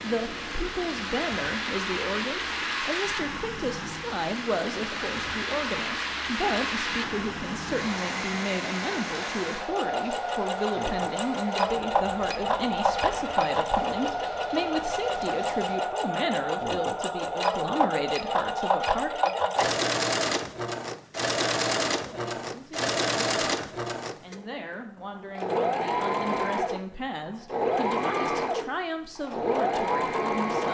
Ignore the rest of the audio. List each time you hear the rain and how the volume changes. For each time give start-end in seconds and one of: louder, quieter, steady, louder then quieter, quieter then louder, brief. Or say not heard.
0.0-15.8 quieter.